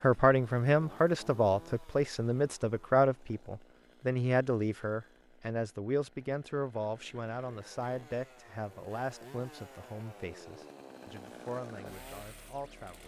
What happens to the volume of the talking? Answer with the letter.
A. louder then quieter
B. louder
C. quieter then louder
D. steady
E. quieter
E.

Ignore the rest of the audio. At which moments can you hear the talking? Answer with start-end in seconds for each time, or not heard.
0.0-13.0.